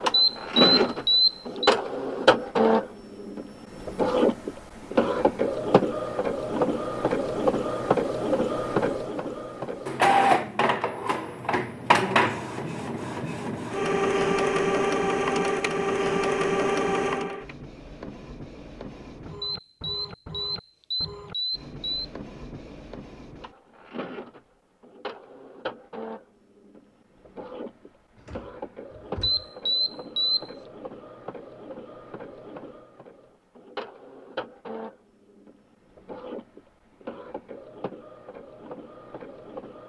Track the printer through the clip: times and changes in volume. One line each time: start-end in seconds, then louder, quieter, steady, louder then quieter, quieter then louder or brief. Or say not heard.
0.0-39.8 quieter.